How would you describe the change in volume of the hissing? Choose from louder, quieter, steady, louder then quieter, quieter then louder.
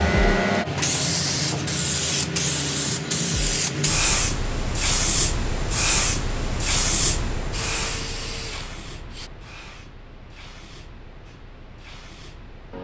quieter.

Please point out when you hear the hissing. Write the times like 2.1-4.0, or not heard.
0.0-12.7.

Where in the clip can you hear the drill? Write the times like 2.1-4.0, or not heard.
7.5-9.3.